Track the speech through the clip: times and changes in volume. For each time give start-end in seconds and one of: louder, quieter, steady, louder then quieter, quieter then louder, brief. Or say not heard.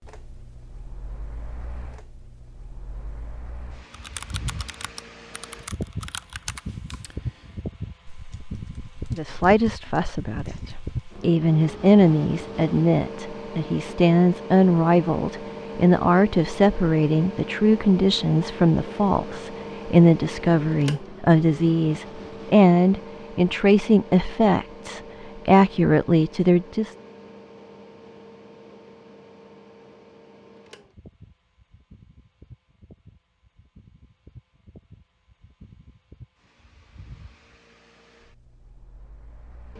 9.1-26.9 steady.